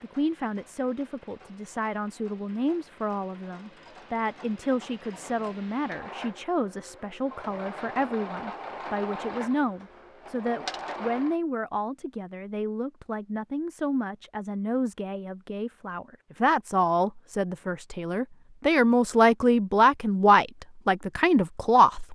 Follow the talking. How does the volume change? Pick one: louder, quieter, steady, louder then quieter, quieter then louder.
louder.